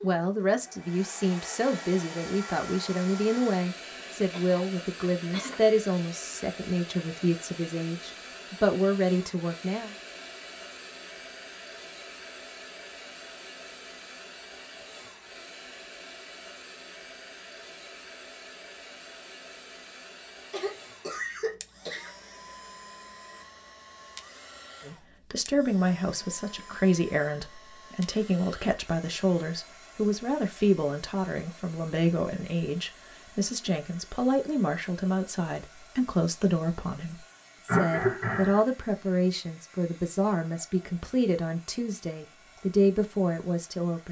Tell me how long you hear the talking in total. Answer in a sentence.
The talking can be heard for 29 seconds in total.